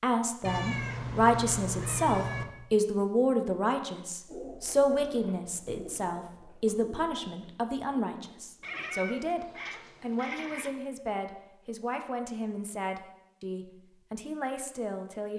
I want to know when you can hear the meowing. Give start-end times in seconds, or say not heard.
0.4-2.5, 8.6-10.8.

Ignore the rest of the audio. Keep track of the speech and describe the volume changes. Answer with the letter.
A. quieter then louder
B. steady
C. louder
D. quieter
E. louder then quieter
D.